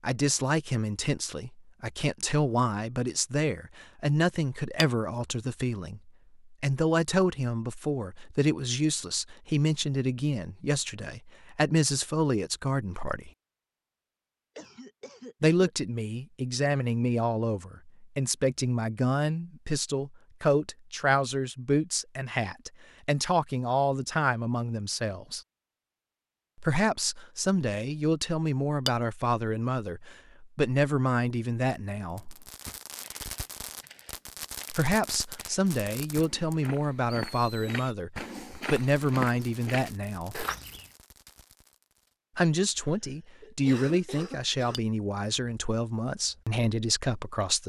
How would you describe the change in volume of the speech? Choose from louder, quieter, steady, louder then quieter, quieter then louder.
steady.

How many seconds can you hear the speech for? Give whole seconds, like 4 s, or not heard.
40 s.